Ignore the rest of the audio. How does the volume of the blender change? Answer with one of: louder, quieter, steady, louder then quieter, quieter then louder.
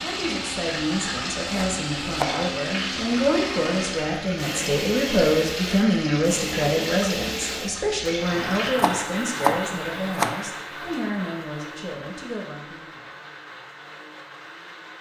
quieter.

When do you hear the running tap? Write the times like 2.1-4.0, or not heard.
0.0-8.8.